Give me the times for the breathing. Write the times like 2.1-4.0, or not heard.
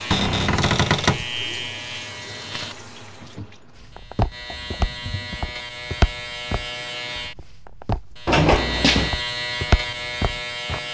not heard.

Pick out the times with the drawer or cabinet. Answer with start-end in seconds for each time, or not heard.
0.1-1.2, 8.2-9.2.